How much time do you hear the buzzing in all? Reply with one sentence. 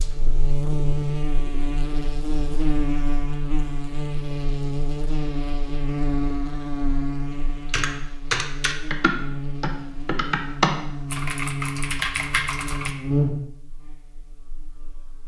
You can hear the buzzing for 15 seconds altogether.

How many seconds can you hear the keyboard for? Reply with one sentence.
You can hear the keyboard for 5 seconds altogether.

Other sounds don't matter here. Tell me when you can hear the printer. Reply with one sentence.
You can't hear the printer here.